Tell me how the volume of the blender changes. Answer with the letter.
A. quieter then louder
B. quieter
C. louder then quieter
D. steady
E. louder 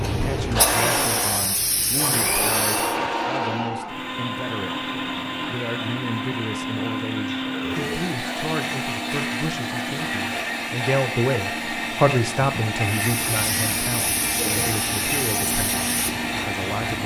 D.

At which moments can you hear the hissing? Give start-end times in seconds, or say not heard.
0.0-3.0, 12.8-17.0.